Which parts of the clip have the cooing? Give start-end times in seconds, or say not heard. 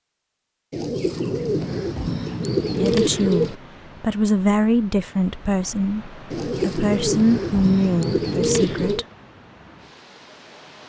0.7-3.5, 6.3-9.1.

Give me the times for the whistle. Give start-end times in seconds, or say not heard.
not heard.